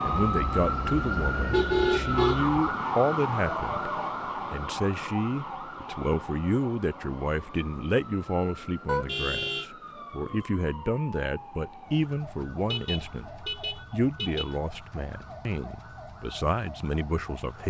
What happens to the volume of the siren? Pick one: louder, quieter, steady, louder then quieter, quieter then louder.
quieter.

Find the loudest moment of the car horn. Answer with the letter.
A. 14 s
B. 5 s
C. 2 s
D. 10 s
C.